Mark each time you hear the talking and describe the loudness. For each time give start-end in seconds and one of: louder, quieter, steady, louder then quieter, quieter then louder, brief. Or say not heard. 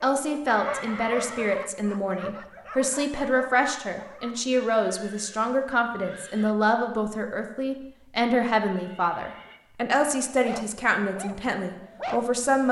0.0-12.6 steady.